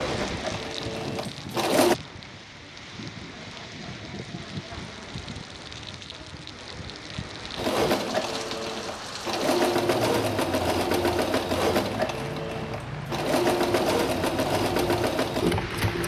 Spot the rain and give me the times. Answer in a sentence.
You can hear the rain from 0.0 to 16.0 s.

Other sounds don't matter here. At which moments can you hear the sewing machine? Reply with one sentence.
You can hear the sewing machine from 0.0 to 1.9 s and from 7.5 to 16.0 s.